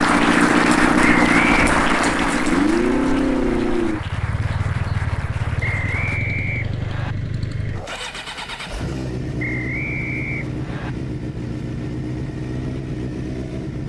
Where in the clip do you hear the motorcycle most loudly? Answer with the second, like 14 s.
1 s.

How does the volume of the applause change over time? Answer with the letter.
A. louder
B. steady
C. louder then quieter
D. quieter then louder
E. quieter
E.